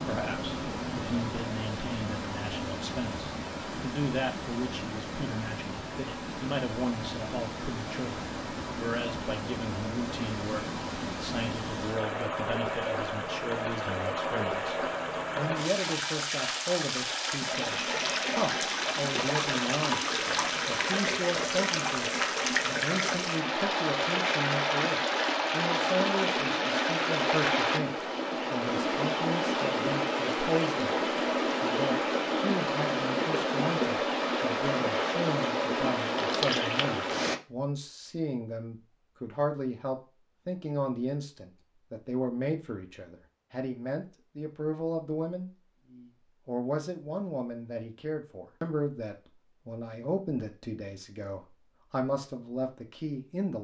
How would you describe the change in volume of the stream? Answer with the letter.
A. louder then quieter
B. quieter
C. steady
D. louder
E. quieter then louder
D.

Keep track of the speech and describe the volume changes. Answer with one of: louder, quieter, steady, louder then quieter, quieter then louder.
steady.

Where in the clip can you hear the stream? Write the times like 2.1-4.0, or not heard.
0.0-37.4.